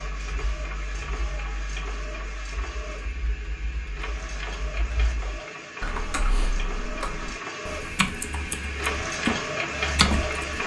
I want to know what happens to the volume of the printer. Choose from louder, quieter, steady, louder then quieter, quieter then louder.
louder.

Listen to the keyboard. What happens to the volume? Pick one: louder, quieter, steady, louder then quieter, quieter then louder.
louder.